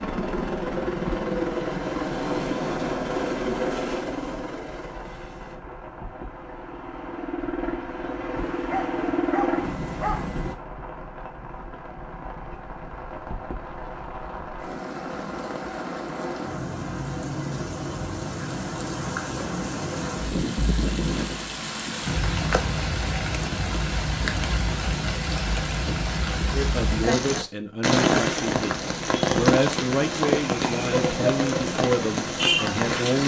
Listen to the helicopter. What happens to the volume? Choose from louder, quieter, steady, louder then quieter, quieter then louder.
quieter then louder.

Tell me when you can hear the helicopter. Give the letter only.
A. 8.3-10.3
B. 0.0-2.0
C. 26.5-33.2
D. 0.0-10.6
D.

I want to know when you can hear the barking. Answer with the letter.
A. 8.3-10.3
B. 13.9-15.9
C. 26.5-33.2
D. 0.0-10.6
A.